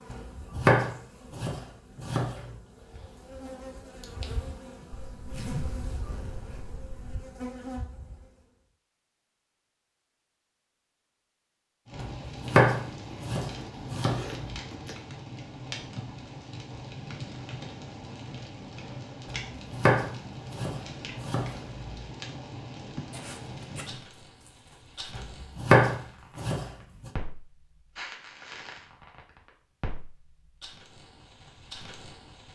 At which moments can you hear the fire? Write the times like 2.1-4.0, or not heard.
11.8-32.5.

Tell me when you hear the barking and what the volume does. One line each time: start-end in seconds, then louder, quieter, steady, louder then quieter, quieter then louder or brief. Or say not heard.
not heard.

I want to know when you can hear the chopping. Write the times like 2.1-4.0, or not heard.
0.1-2.6, 11.9-14.6, 19.2-21.9, 25.1-27.1.